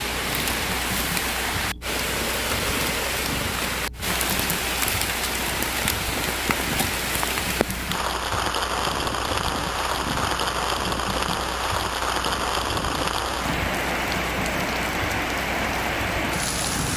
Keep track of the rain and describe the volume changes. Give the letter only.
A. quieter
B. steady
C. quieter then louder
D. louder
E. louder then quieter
B.